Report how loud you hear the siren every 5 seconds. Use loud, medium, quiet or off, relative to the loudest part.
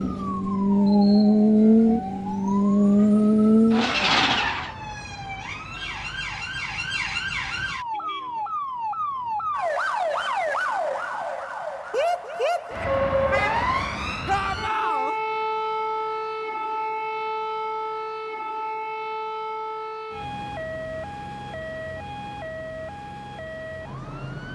medium, loud, loud, loud, medium.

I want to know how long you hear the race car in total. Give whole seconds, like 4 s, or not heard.
5 s.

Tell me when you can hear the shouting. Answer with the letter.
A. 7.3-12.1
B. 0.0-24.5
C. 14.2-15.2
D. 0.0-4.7
C.